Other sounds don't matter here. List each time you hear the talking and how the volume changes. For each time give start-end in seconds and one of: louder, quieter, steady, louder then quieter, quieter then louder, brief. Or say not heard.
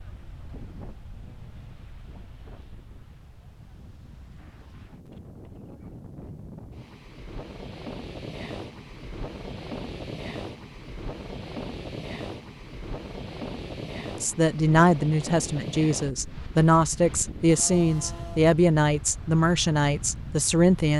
14.2-20.9 steady.